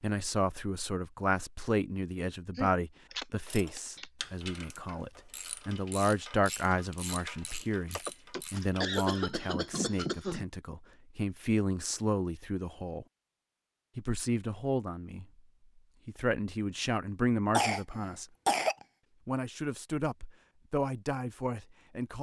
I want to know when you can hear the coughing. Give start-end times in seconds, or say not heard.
2.5-4.0, 8.0-10.4, 17.6-18.8.